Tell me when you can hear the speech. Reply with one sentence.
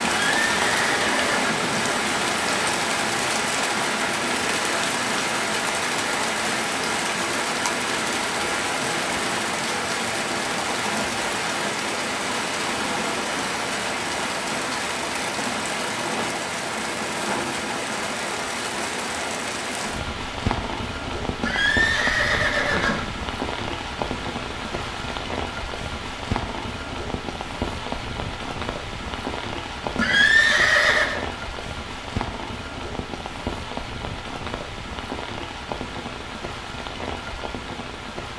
The speech can't be heard in this clip.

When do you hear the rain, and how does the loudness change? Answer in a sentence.
You can hear the rain from 0.0 to 38.3 s, getting quieter.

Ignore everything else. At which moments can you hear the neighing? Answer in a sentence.
You can hear the neighing from 0.0 to 1.9 s, from 21.4 to 23.1 s and from 29.9 to 31.2 s.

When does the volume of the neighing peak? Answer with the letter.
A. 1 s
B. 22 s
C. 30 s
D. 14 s
C.